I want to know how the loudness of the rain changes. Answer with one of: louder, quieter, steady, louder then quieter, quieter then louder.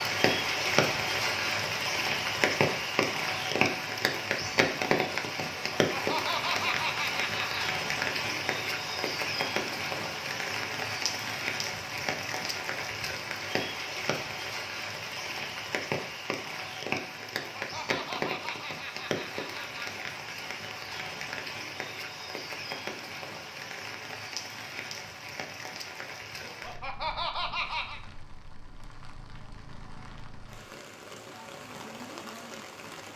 quieter.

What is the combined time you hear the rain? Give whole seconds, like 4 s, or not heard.
33 s.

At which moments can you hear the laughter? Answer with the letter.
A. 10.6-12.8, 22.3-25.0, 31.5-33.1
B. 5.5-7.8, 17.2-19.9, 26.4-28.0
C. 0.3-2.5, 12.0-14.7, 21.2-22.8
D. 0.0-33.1
B.